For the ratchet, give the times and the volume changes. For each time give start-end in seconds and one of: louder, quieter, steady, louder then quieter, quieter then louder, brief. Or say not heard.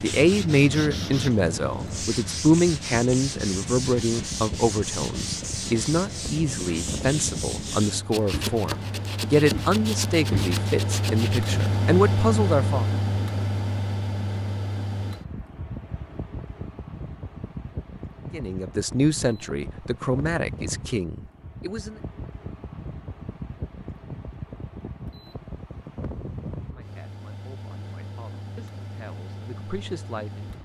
not heard.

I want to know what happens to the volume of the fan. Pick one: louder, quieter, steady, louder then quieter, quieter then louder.
louder then quieter.